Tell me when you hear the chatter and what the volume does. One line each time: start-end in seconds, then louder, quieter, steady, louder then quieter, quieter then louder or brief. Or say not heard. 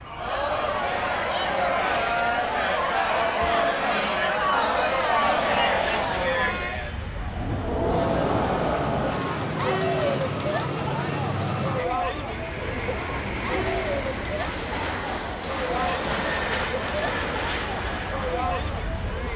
0.0-19.3 quieter.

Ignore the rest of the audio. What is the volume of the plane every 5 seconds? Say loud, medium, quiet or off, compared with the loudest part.
medium, loud, loud, loud.